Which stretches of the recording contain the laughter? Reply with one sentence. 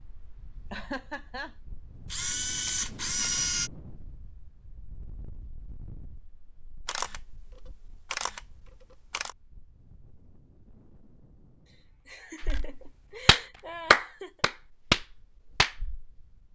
You can hear the laughter from 0.7 to 1.6 s and from 11.7 to 14.4 s.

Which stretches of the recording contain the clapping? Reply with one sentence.
The clapping can be heard from 12.4 to 16.1 s.